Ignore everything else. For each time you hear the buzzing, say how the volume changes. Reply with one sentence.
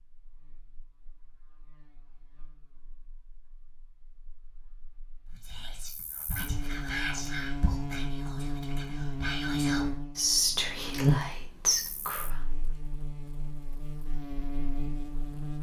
You can hear the buzzing from 0.2 to 15.5 s, getting louder then quieter.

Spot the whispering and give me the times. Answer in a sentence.
You can hear the whispering from 5.2 to 12.4 s.